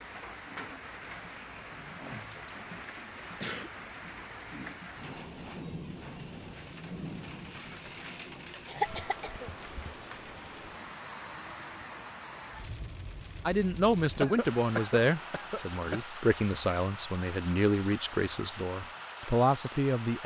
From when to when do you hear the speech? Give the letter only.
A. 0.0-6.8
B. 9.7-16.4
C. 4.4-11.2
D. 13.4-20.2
D.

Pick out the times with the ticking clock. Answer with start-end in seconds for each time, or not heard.
not heard.